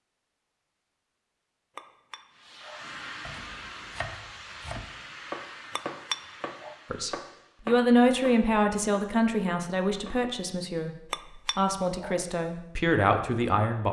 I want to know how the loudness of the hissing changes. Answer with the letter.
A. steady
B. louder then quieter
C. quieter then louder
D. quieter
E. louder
D.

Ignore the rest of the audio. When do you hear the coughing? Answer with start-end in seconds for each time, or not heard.
not heard.